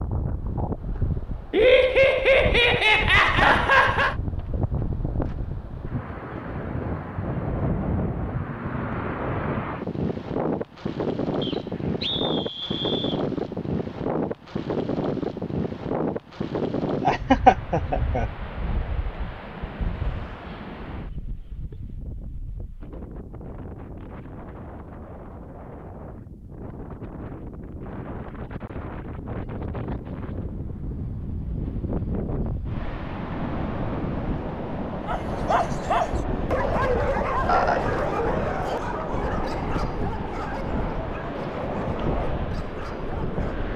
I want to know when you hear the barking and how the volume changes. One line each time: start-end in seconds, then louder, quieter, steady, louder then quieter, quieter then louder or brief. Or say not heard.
35.0-43.7 quieter.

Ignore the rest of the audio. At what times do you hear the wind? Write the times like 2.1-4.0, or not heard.
0.0-43.7.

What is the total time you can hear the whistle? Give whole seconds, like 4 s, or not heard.
2 s.